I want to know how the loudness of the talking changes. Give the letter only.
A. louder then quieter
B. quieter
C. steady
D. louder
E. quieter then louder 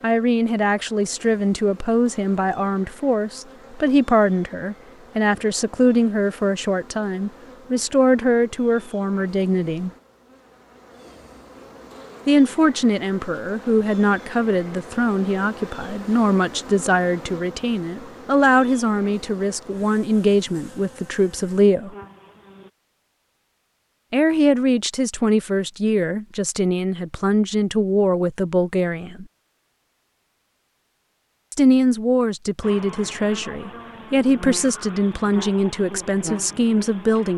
C.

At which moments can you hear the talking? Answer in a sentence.
You can hear the talking from 0.0 to 9.9 s, from 12.2 to 21.9 s, from 24.1 to 29.2 s and from 31.5 to 37.3 s.